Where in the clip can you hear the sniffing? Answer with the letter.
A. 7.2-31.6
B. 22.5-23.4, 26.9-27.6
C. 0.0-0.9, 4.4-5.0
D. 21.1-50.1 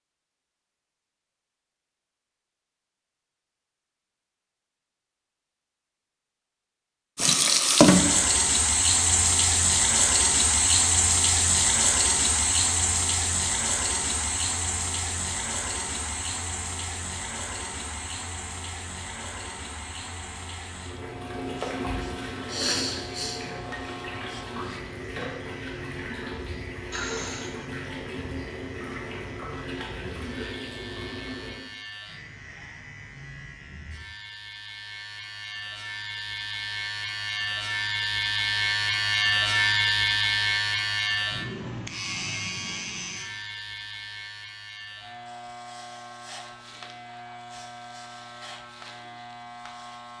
B.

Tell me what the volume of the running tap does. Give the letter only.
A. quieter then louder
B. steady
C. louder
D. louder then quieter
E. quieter
E.